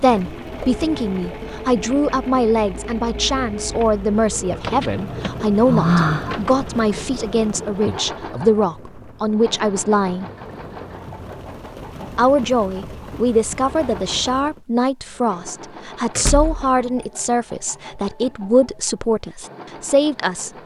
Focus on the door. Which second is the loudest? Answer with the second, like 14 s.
6 s.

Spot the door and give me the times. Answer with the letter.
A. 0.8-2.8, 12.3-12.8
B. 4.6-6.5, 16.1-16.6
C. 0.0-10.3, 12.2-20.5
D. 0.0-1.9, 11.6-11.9
B.